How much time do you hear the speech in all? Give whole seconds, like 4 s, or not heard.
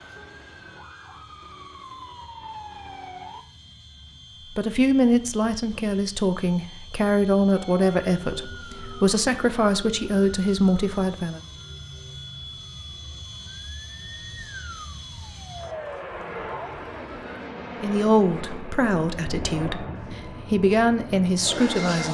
11 s.